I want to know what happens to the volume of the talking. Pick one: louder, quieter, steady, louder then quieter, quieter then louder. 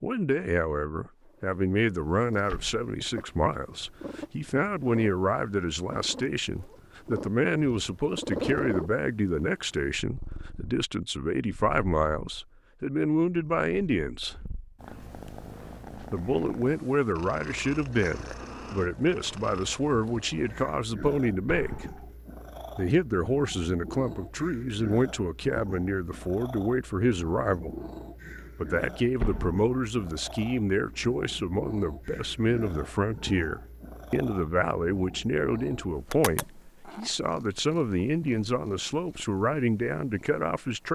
steady.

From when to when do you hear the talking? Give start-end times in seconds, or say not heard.
0.0-14.4, 16.1-21.9, 22.8-27.7, 28.6-40.9.